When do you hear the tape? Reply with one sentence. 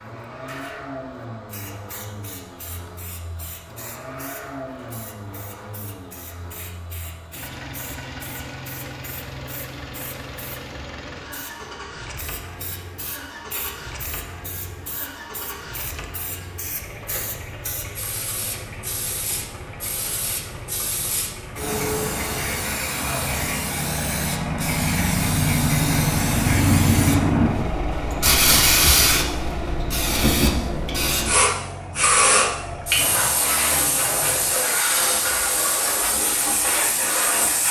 You can't hear the tape here.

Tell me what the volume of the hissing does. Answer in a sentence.
The volume of the hissing goes up.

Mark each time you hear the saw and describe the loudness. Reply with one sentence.
You can't hear the saw here.